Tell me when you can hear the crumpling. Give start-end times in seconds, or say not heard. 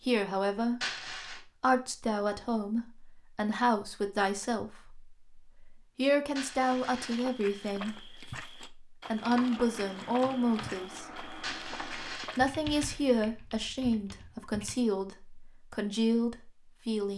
0.8-1.4, 6.3-7.5, 11.4-13.1.